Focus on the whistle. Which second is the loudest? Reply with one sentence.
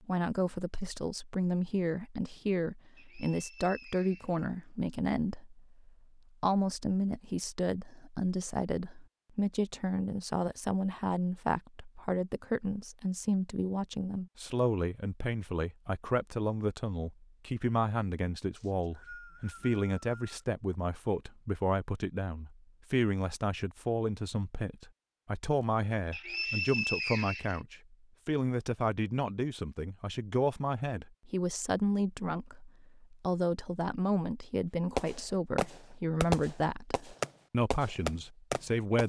The loudest moment of the whistle is at 27 seconds.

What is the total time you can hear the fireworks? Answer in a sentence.
The fireworks can be heard for 4 seconds in total.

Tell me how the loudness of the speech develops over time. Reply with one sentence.
The loudness of the speech stays about the same.